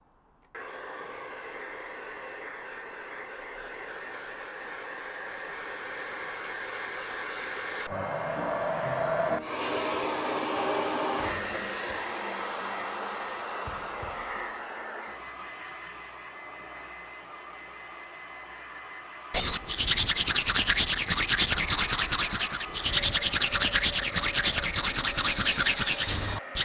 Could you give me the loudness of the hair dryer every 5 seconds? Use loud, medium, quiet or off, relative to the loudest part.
medium, loud, loud, medium, medium, medium.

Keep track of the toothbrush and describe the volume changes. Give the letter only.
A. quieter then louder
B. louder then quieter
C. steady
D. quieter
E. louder
C.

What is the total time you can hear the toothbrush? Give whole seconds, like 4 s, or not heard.
7 s.